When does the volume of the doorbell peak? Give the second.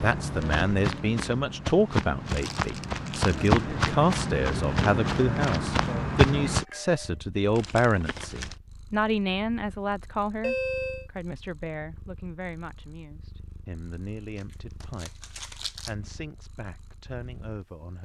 11 s.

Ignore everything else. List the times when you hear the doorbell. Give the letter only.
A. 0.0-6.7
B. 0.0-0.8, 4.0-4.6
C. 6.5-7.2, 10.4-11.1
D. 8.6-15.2
C.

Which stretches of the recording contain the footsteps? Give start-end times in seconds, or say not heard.
0.0-6.7.